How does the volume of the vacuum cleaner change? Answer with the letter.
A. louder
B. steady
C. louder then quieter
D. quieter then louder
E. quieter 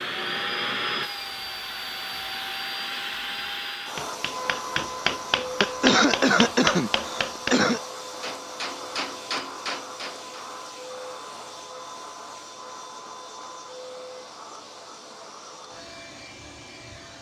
E.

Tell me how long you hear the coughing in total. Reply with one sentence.
You can hear the coughing for 2 seconds altogether.